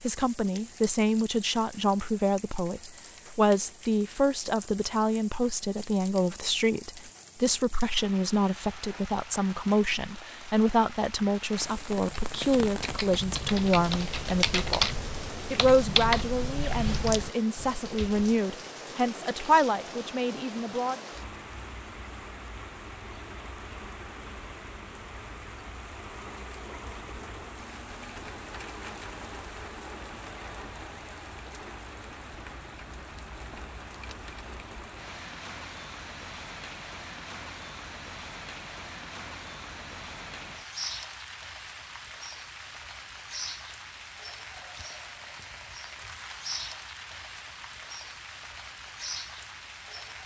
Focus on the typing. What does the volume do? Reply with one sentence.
The loudness of the typing goes up, then down.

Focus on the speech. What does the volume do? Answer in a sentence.
The loudness of the speech stays about the same.